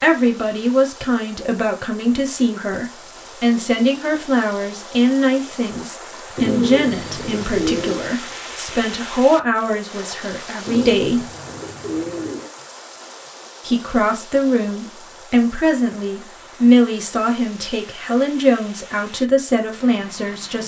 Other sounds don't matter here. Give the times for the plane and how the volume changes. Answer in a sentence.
You can't hear the plane here.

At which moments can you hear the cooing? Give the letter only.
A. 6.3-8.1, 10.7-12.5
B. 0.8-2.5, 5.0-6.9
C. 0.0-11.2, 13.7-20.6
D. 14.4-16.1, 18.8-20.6
A.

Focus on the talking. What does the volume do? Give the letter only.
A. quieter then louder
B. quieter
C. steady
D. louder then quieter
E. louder
C.